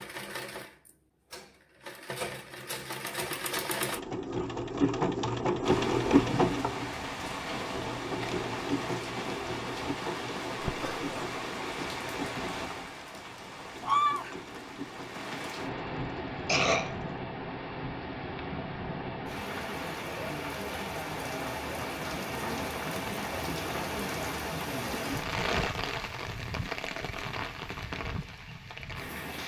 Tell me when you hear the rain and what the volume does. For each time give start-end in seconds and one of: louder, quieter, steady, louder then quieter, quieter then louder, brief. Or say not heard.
5.7-29.4 steady.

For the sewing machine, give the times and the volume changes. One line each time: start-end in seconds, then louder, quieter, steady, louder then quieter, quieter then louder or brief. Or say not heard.
0.0-17.2 louder then quieter.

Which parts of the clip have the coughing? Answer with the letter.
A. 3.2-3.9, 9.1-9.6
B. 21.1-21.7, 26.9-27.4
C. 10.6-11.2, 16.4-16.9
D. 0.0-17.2
C.